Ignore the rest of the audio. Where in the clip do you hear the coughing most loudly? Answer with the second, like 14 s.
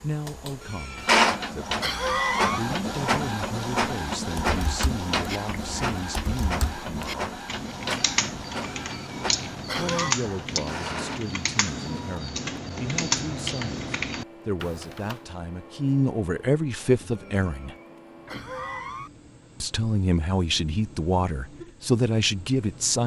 2 s.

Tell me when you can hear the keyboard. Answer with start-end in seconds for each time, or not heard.
4.3-15.2.